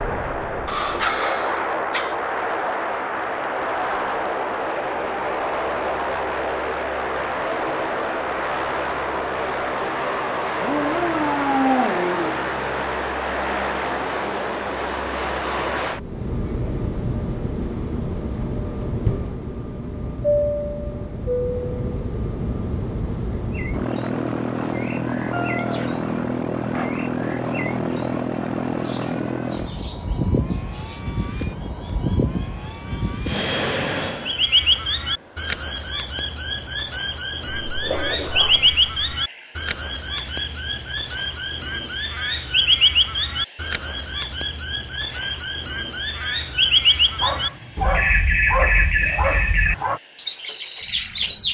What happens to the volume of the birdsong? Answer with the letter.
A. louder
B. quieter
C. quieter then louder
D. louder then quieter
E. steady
A.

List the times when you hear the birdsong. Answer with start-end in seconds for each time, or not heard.
23.4-51.5.